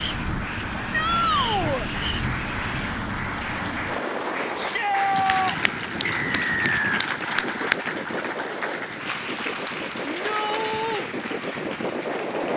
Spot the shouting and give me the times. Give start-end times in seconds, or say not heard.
0.9-1.9, 4.5-5.8, 10.0-11.1.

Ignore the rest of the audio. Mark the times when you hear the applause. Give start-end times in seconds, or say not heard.
0.0-12.5.